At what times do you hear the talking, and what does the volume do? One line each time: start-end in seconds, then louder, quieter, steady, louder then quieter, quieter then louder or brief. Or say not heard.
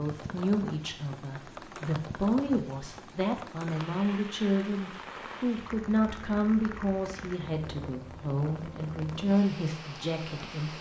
0.0-10.7 steady.